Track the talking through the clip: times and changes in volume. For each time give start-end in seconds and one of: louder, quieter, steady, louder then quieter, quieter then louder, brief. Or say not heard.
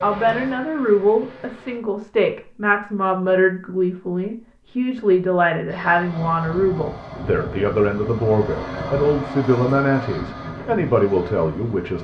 0.0-11.9 steady.